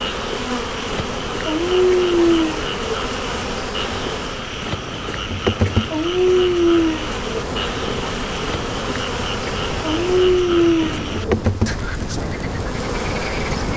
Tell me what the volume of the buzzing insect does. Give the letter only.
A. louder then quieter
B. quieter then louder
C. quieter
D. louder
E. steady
E.